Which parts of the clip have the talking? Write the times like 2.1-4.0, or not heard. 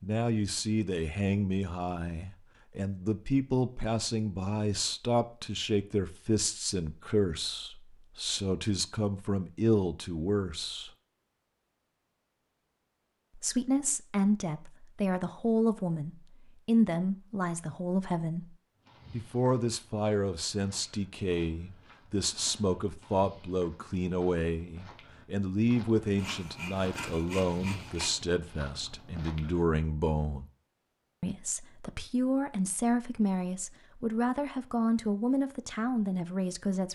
0.0-10.9, 13.3-30.4, 31.2-36.8.